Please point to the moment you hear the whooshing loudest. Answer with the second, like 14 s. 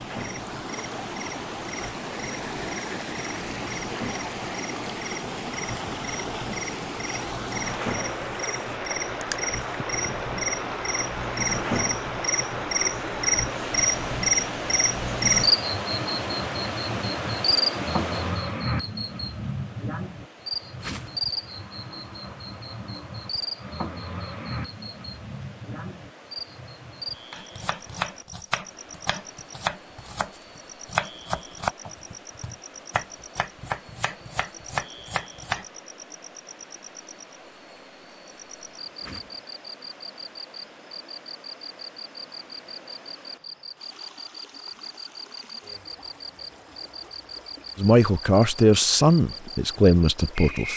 21 s.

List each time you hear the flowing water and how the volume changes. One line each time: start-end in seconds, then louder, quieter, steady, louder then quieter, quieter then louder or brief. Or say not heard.
0.0-50.7 quieter.